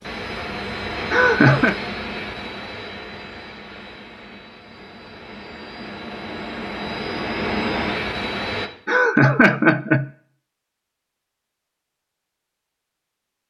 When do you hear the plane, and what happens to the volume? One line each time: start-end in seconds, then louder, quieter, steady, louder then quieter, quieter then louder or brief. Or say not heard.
0.0-8.7 quieter then louder.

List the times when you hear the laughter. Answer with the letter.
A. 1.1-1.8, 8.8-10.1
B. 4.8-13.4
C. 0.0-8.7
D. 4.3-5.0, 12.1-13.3
A.